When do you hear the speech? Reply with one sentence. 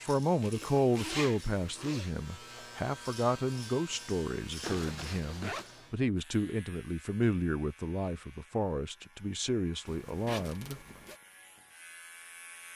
The speech can be heard from 0.0 to 10.8 s.